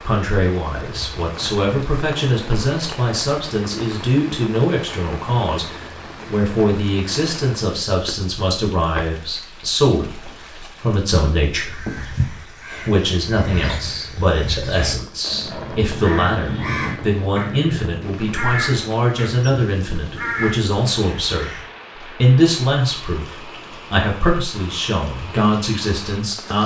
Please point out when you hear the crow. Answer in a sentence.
The crow can be heard from 11.7 to 21.6 s.